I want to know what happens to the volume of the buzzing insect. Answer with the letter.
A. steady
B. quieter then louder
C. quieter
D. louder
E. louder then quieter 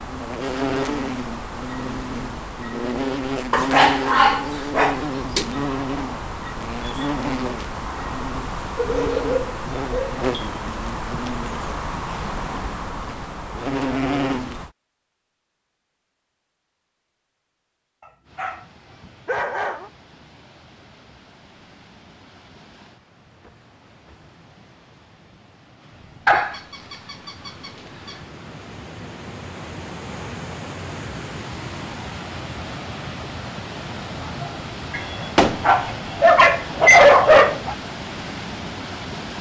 A.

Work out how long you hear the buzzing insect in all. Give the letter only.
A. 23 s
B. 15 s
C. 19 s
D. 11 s
B.